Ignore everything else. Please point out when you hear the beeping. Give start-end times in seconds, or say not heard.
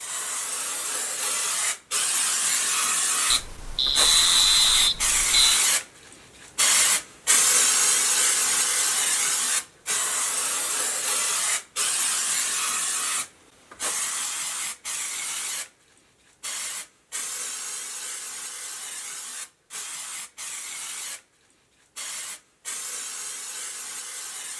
3.3-5.7.